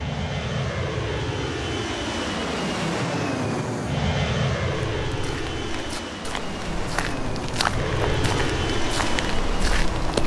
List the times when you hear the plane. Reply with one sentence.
The plane can be heard from 0.0 to 10.2 s.